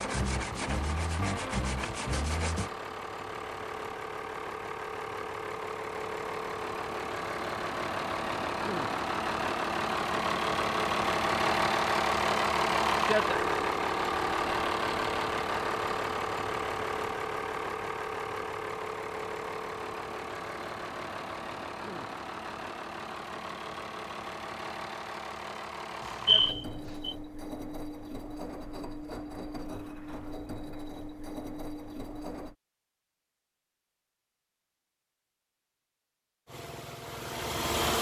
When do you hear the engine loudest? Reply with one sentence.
The loudest moment of the engine is at 13 seconds.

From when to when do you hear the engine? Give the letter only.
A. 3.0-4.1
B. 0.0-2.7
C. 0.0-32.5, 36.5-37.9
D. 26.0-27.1
C.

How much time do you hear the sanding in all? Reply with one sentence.
The sanding can be heard for 3 seconds in total.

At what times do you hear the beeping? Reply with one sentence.
The beeping can be heard from 26.0 to 27.1 s.